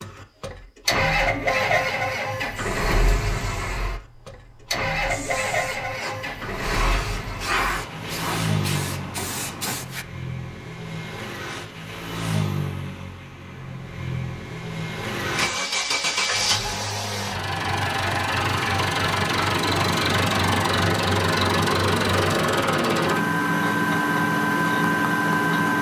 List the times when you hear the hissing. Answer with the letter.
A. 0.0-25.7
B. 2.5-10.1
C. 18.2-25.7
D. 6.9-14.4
B.